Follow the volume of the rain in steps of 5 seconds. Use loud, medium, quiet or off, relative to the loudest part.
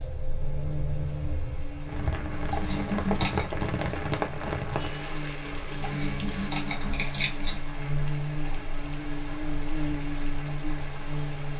loud, medium, medium.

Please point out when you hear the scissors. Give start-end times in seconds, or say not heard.
2.5-3.5, 5.8-7.6.